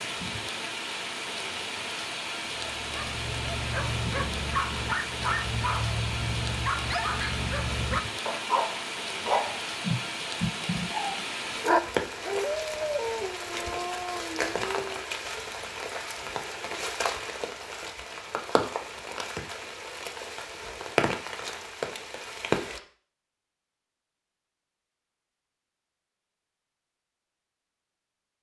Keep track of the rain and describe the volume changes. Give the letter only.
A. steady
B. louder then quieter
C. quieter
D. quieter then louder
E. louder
A.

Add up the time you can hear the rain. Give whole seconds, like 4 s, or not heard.
23 s.